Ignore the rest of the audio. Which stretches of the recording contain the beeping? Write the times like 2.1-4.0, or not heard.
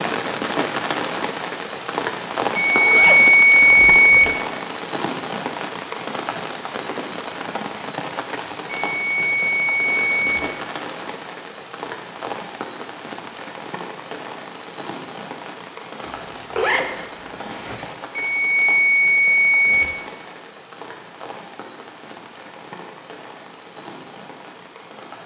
2.5-4.3, 8.7-10.4, 18.1-19.9.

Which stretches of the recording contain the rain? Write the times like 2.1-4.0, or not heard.
0.0-25.2.